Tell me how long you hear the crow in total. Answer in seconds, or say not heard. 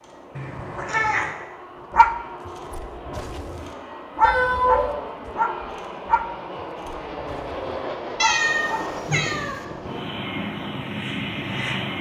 not heard.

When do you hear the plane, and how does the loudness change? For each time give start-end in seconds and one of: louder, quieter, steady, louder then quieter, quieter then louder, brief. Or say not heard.
0.0-11.9 louder.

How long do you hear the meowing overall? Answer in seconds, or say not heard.
3 s.